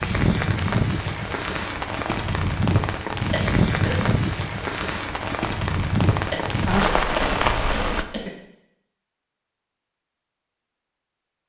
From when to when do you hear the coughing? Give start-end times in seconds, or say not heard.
3.3-4.0, 6.3-8.3.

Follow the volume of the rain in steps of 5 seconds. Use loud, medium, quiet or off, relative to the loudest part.
loud, loud, off.